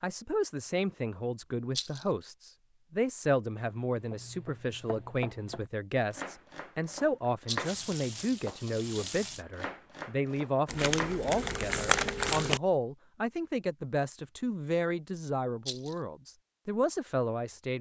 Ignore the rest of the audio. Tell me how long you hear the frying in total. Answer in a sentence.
The frying can be heard for 2 seconds in total.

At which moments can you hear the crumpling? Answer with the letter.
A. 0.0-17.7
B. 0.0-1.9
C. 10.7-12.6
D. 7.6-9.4
C.